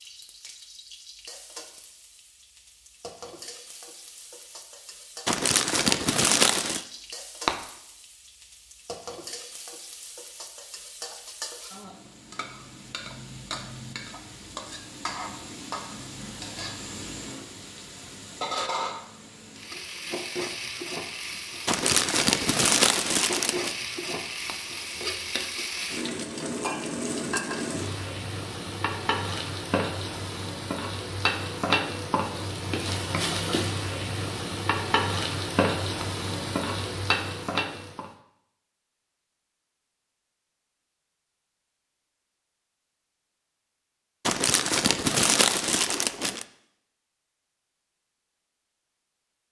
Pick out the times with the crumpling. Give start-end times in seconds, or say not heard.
5.2-6.8, 21.6-23.8, 44.2-46.5.